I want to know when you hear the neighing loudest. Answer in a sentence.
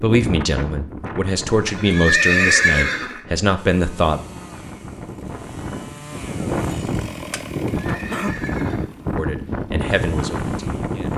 The loudest moment of the neighing is at 2 seconds.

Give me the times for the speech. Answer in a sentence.
You can hear the speech from 0.0 to 4.2 s and from 9.2 to 11.1 s.